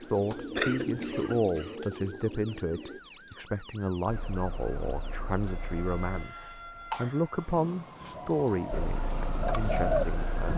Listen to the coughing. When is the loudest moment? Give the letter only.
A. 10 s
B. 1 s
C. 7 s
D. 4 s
B.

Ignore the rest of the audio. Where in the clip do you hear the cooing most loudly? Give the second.
10 s.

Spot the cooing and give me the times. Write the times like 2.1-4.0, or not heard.
0.0-3.0, 8.0-10.5.